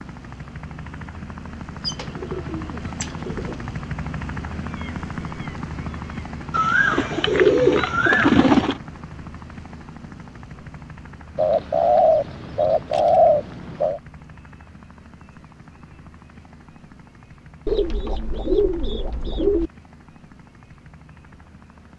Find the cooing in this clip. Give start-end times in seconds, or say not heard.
1.9-3.5, 6.5-8.8, 11.3-14.0, 17.6-19.7.